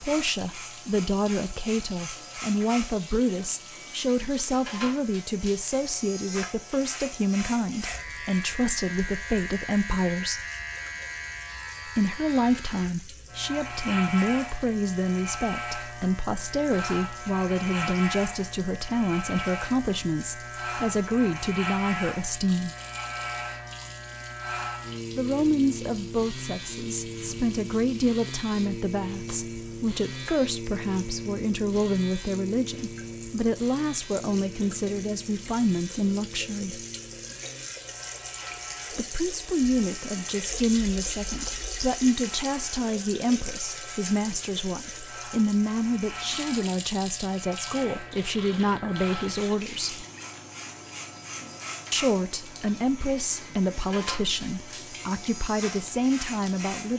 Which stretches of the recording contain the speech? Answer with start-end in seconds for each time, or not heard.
0.0-10.4, 11.8-22.8, 25.1-36.9, 38.9-50.0, 51.9-56.9.